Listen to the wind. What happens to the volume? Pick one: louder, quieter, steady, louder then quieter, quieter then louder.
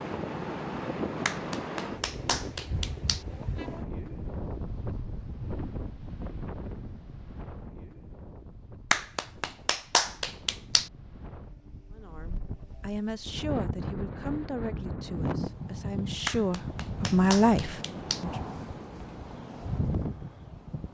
quieter then louder.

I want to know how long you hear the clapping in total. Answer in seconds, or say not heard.
6 s.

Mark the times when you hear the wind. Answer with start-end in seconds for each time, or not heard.
0.0-20.8.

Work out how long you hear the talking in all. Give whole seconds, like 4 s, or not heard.
6 s.